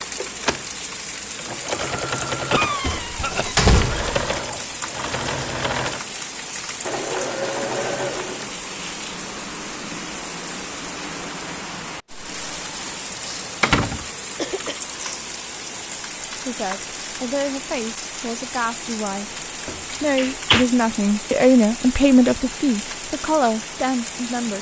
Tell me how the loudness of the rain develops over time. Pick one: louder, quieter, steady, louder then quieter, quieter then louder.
steady.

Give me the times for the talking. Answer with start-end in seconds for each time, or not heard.
16.4-24.5.